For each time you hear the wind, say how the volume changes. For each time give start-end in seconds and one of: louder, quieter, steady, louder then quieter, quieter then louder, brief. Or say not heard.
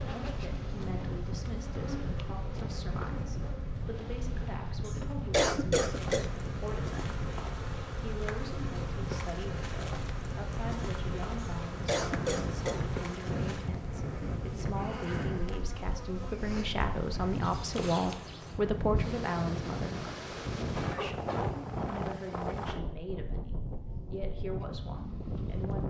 0.0-25.8 steady.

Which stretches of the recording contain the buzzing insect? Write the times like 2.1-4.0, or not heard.
0.0-18.6.